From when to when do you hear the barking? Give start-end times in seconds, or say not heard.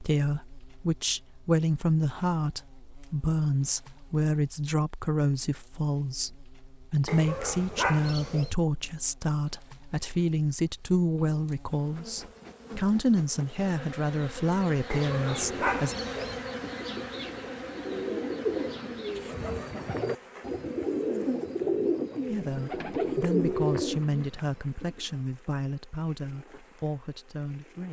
7.0-8.6, 14.9-16.4.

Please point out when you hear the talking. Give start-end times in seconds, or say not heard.
0.0-15.9, 22.3-27.8.